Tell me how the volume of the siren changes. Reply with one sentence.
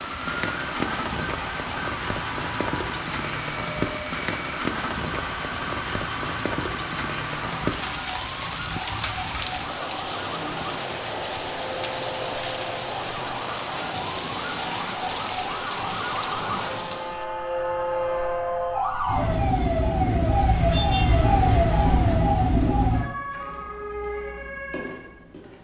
The volume of the siren goes up.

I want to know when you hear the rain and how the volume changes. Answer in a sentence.
You can hear the rain from 0.0 to 17.2 s, at a steady volume.